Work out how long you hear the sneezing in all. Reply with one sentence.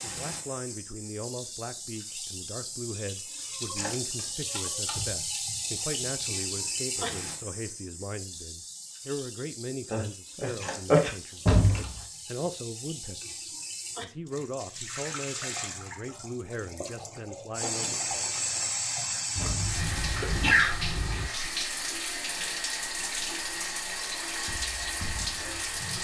The sneezing can be heard for 3 seconds in total.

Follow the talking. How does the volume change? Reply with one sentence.
The volume of the talking stays about the same.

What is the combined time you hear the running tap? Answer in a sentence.
You can hear the running tap for 26 seconds altogether.